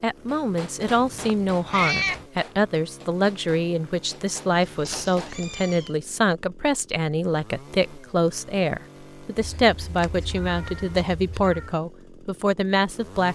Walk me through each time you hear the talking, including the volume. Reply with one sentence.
The talking can be heard from 0.0 to 13.3 s, at a steady volume.